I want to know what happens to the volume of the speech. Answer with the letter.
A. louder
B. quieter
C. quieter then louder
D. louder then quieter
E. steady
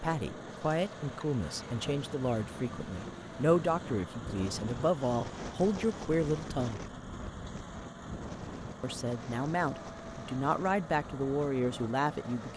E.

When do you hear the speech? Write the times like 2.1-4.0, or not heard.
0.0-6.8, 8.8-12.5.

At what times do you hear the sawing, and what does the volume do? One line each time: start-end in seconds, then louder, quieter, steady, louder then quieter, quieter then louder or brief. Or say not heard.
not heard.